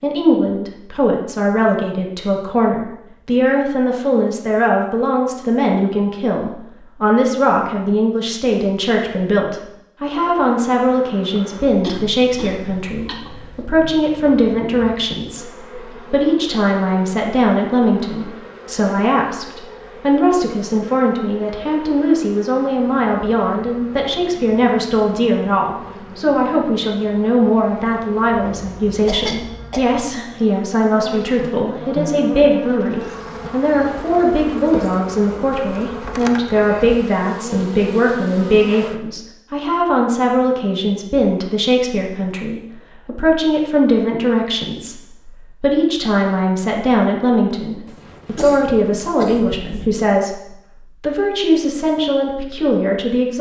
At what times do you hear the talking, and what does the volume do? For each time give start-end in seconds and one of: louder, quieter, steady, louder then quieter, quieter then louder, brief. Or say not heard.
0.0-53.3 steady.